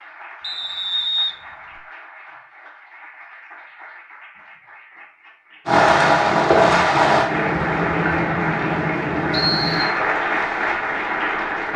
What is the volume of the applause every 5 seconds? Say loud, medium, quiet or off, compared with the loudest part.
quiet, loud, loud.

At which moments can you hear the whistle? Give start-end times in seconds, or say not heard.
0.4-1.8, 9.3-9.9.